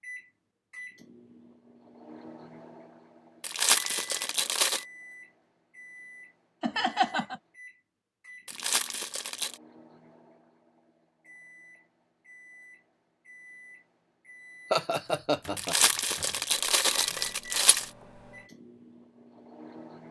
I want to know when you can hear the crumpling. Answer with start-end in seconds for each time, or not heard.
3.4-4.8, 8.4-9.6, 15.6-17.9.